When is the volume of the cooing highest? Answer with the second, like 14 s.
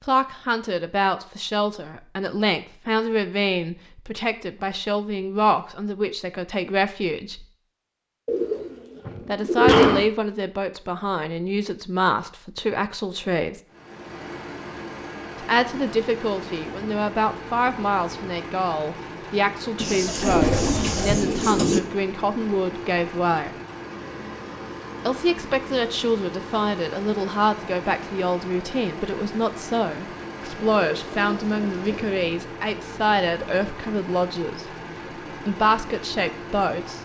10 s.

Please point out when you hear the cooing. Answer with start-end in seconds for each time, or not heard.
8.2-10.1, 19.8-21.8, 30.5-32.1.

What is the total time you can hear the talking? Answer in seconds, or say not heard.
31 s.